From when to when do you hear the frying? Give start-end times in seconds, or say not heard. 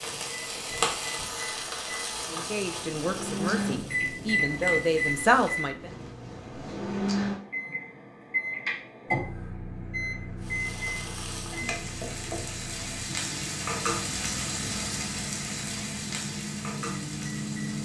0.0-5.7, 10.3-17.7.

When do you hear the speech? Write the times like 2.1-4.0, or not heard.
2.2-5.9.